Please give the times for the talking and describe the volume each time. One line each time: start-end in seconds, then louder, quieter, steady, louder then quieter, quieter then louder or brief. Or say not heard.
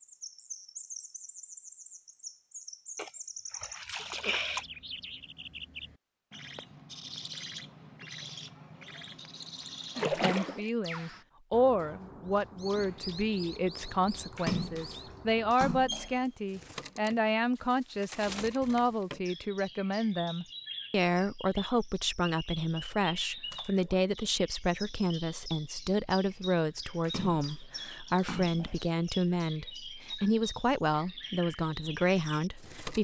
10.1-32.9 steady.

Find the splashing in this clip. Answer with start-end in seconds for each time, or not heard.
3.0-4.7, 9.9-10.7, 14.3-16.1, 23.5-24.0, 27.0-28.9.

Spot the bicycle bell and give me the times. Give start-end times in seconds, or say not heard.
not heard.